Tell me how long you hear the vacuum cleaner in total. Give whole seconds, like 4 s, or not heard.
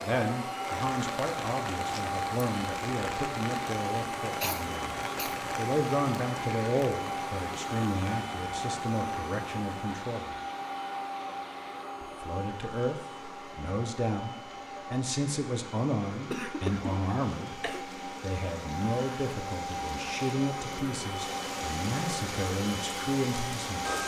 24 s.